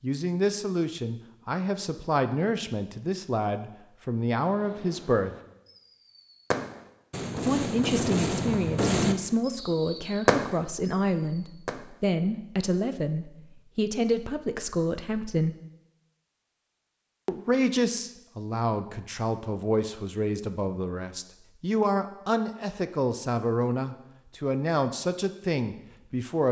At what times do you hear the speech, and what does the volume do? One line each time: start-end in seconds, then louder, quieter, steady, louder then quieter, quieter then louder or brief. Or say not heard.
0.0-5.3 steady
7.5-15.6 steady
17.2-26.4 steady.